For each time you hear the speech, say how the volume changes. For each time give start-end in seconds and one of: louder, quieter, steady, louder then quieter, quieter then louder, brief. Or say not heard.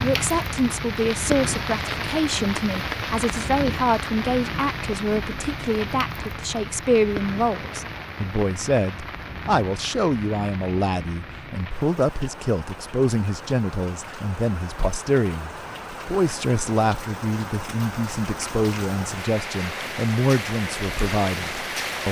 0.0-22.0 steady.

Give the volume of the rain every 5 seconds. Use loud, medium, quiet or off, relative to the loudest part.
loud, medium, medium, medium, loud.